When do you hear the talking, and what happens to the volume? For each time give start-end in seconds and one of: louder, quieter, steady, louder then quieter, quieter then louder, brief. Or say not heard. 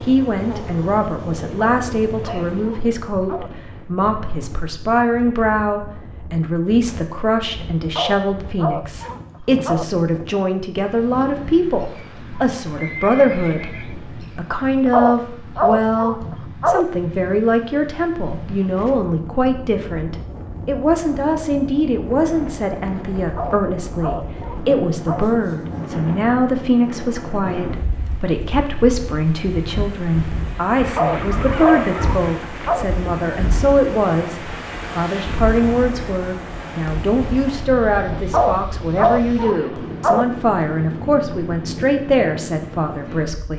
0.0-43.5 steady.